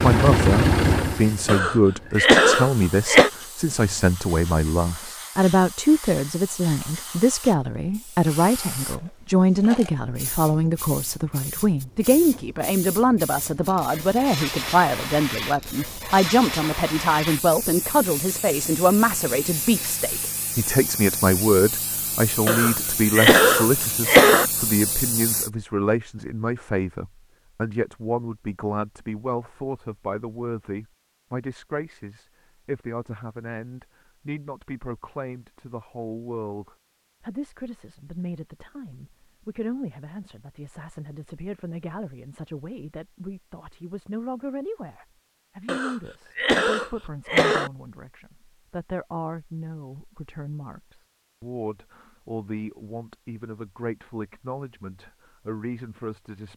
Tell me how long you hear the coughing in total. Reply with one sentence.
You can hear the coughing for 6 seconds altogether.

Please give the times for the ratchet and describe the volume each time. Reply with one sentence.
The ratchet can't be heard in this clip.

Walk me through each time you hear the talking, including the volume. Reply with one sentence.
You can hear the talking from 0.0 to 56.5 s, getting quieter.